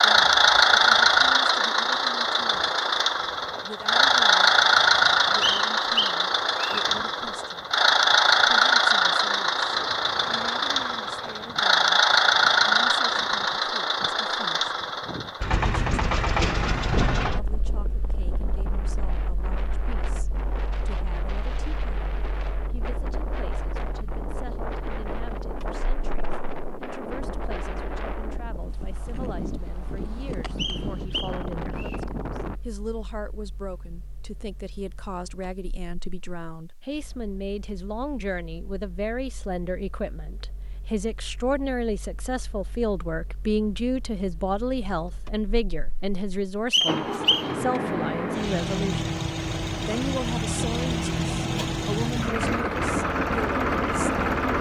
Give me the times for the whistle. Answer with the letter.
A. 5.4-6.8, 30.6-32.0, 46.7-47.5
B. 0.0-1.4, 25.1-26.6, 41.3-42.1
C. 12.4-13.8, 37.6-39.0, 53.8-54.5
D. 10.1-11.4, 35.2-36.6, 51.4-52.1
A.